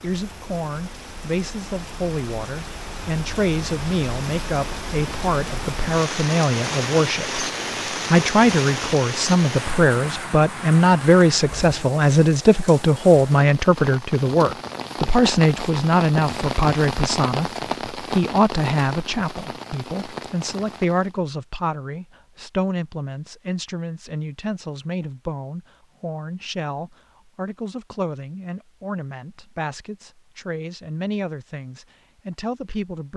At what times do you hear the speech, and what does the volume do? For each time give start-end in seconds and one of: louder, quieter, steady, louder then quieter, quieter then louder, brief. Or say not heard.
0.0-33.1 louder then quieter.